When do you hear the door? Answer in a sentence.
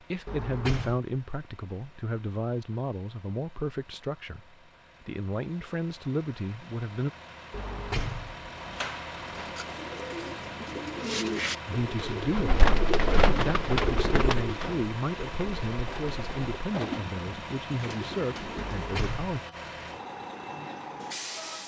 The door can be heard from 0.2 to 1.0 s, from 7.5 to 9.6 s and from 18.6 to 19.4 s.